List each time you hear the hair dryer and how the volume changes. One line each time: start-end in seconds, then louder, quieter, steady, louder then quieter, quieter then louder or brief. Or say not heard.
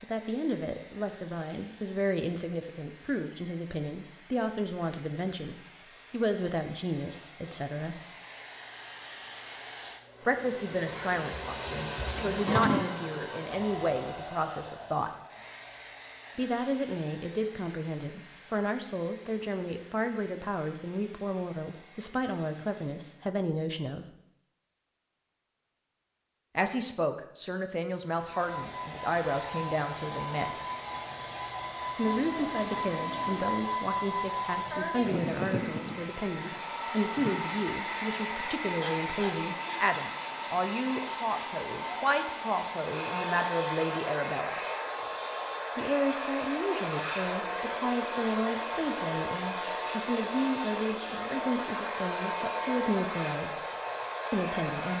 0.0-23.4 louder then quieter
28.1-54.9 steady.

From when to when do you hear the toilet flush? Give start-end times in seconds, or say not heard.
12.2-12.9, 32.0-33.5.